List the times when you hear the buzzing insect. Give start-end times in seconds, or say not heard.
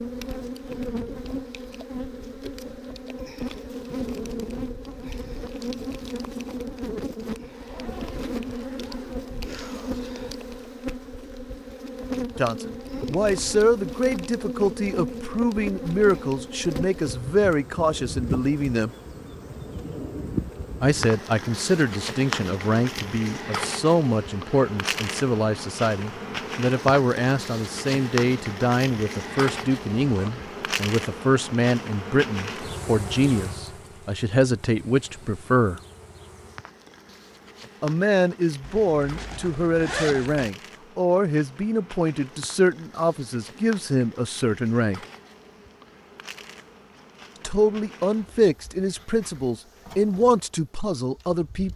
0.0-51.7.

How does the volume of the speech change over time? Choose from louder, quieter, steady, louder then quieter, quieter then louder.
steady.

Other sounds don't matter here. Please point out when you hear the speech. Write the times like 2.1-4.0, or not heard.
12.3-18.9, 20.8-35.8, 37.8-45.0, 47.4-51.7.